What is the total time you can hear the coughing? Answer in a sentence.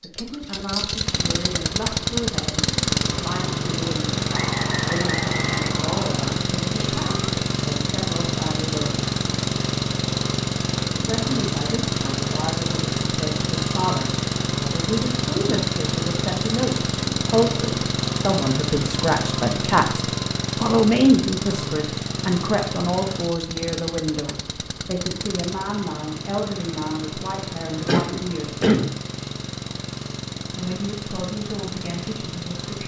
You can hear the coughing for 2 seconds altogether.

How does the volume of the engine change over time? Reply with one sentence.
The loudness of the engine goes down.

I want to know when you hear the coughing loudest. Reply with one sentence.
The loudest moment of the coughing is at 29 seconds.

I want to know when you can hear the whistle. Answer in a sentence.
The whistle can be heard from 4.3 to 6.3 s.